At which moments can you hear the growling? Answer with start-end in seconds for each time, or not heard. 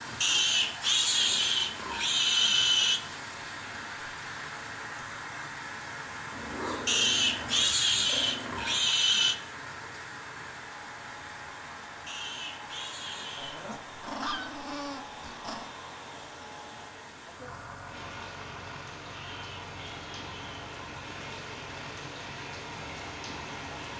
6.3-8.9, 13.3-15.7.